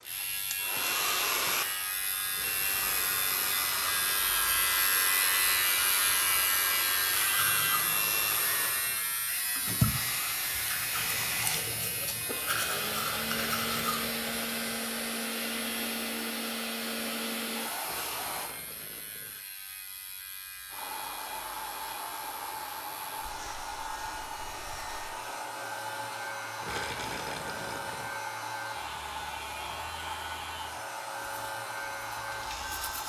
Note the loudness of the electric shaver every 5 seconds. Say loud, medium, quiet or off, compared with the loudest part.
loud, loud, medium, quiet, quiet, medium, medium.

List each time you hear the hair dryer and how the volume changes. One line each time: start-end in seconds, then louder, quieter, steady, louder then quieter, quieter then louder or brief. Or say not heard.
0.0-18.6 steady
20.7-33.0 steady.